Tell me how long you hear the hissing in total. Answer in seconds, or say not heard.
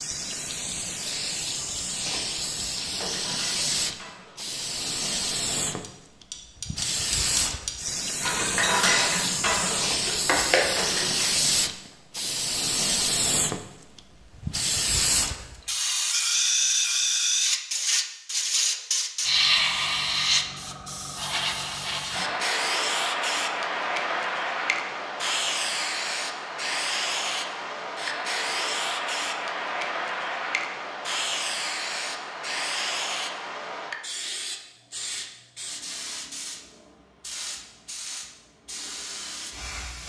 40 s.